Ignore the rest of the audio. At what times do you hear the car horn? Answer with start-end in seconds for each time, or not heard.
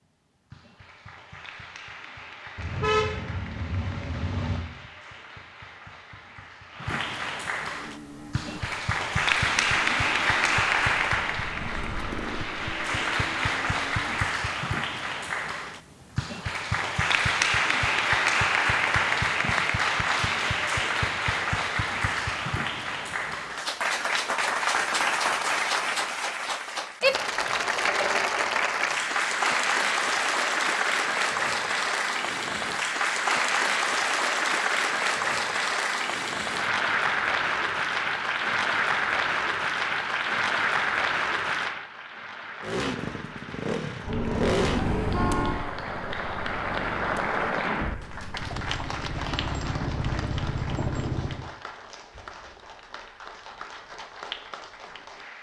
2.5-4.6, 44.0-45.6.